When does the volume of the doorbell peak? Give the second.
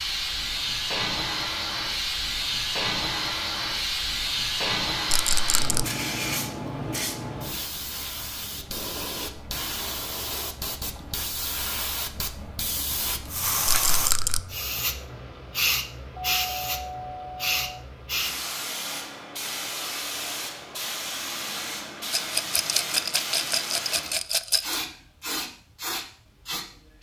17 s.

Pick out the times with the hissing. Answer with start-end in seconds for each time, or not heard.
0.0-26.9.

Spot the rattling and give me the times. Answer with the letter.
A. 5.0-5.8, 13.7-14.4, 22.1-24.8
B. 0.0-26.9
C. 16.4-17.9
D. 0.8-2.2
A.